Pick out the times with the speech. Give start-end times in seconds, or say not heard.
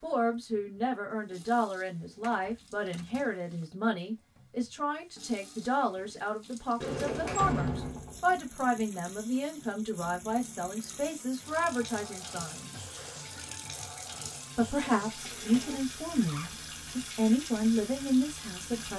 0.0-12.8, 14.6-18.9.